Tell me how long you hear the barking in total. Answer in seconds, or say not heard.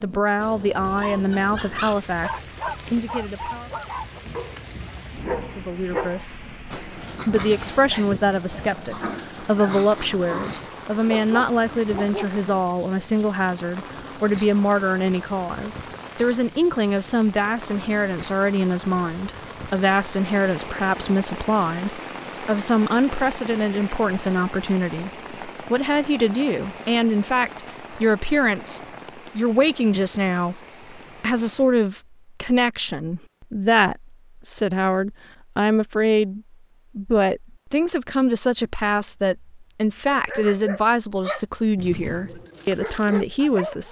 15 s.